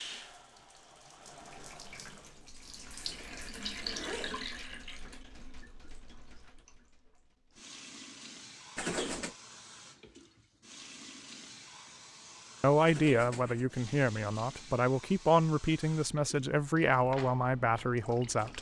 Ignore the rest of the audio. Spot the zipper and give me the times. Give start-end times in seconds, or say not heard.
3.0-4.5, 8.8-9.3, 12.8-13.8.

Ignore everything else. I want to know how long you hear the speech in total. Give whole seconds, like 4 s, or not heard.
6 s.